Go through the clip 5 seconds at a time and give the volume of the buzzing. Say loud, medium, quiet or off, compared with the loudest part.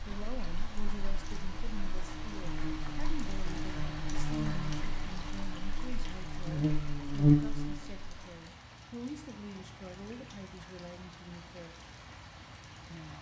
medium, loud, off.